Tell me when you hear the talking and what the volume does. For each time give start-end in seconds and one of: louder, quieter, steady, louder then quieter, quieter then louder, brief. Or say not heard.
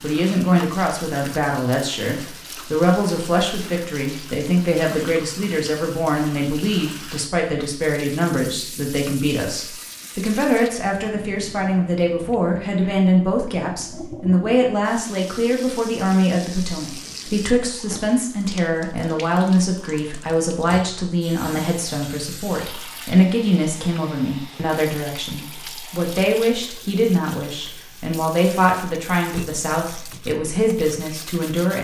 0.0-31.7 steady.